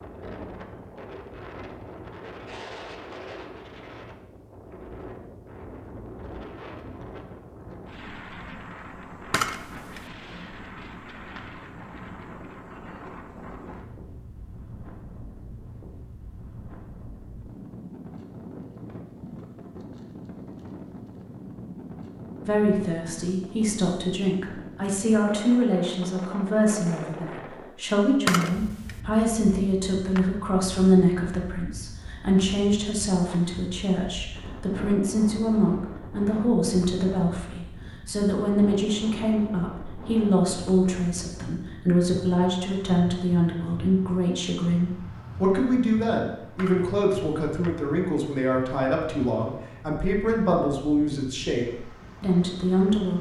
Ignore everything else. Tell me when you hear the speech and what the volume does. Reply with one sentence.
You can hear the speech from 22.4 to 53.1 s, at a steady volume.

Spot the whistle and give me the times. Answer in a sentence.
You can't hear the whistle here.